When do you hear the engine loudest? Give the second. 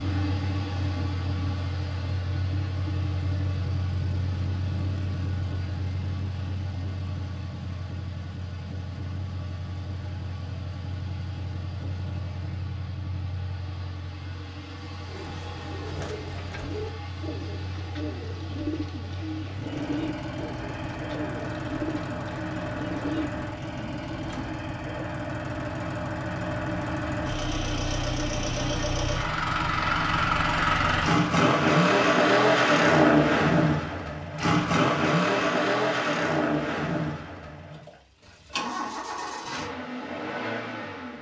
33 s.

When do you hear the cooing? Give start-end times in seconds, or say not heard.
15.1-24.6.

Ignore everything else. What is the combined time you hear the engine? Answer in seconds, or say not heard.
41 s.